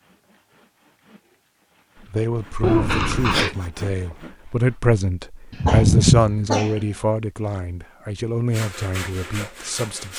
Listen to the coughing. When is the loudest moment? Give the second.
6 s.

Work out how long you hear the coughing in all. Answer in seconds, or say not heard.
2 s.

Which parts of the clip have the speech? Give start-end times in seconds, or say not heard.
2.0-10.1.